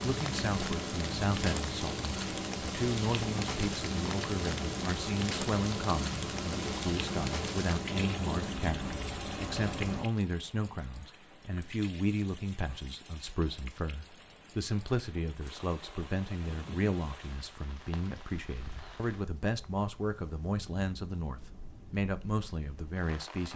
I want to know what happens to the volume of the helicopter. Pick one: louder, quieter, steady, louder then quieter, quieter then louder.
steady.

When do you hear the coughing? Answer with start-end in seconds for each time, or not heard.
not heard.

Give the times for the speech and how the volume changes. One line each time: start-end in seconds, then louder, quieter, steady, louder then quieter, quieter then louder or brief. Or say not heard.
0.0-23.5 steady.